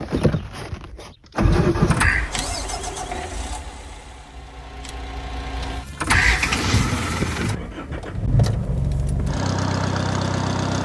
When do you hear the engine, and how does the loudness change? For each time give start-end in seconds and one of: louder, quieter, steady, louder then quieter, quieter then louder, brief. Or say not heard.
0.0-10.8 quieter then louder.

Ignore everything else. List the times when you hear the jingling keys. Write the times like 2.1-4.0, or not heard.
1.5-2.3, 5.6-6.7.